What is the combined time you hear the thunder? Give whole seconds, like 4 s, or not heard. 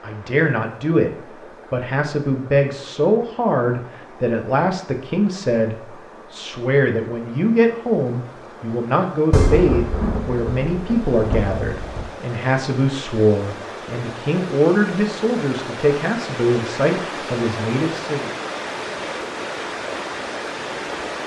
3 s.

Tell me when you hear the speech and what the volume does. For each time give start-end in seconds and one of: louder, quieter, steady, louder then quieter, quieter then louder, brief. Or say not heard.
0.0-1.1 brief
1.7-18.3 steady.